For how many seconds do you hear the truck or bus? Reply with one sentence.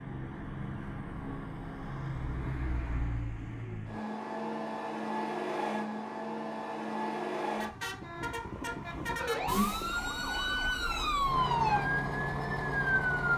The truck or bus can be heard for 13 seconds in total.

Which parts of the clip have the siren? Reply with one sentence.
The siren can be heard from 9.2 to 13.3 s.